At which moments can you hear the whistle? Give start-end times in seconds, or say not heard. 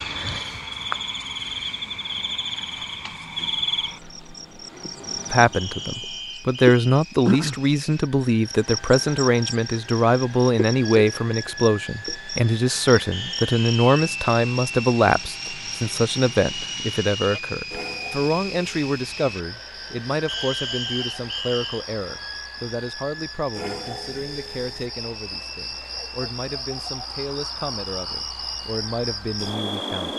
5.5-6.8, 13.1-13.9, 20.2-21.9.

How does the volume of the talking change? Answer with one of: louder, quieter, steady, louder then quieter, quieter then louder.
quieter.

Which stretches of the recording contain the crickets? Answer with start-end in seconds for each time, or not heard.
0.0-30.1.